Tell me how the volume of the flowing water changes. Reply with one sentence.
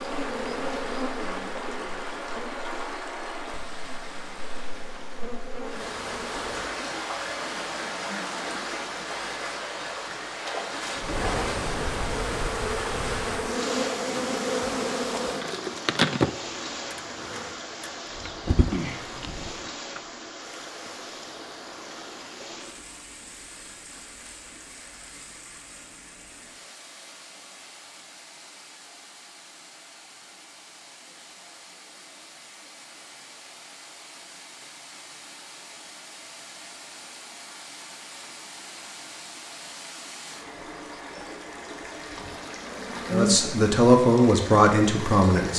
The volume of the flowing water goes down, then up.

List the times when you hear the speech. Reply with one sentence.
The speech can be heard from 43.1 to 45.5 s.